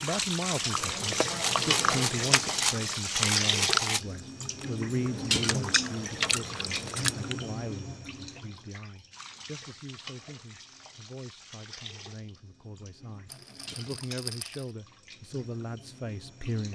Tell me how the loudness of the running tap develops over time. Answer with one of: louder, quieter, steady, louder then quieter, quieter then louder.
quieter.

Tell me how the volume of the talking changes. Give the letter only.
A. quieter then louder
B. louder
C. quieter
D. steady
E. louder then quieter
A.